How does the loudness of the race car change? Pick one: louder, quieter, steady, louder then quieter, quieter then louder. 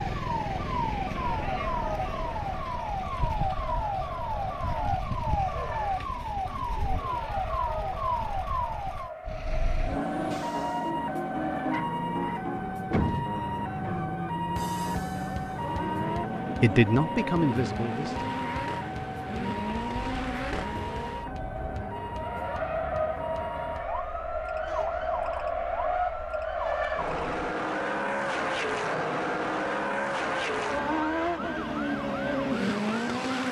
louder.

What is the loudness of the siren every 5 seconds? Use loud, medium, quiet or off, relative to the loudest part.
loud, loud, loud, loud, medium, medium, medium.